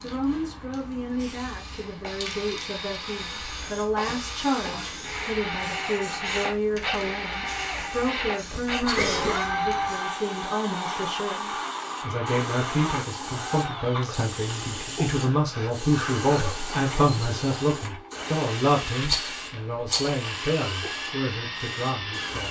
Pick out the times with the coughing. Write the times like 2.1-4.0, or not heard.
4.0-4.9, 8.5-9.4, 16.4-17.1.